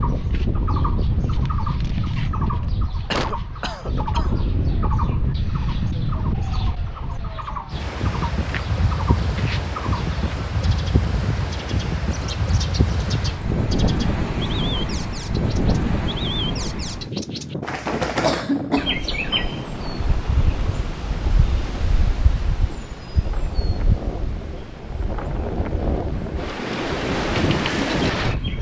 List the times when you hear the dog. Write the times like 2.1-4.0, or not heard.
not heard.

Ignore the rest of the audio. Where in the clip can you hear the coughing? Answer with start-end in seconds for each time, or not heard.
3.1-4.4, 18.2-19.1.